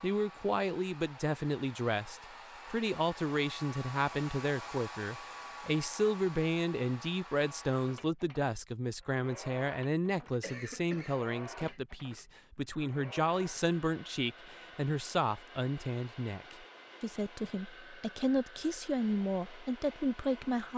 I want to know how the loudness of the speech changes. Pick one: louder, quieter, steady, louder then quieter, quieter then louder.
steady.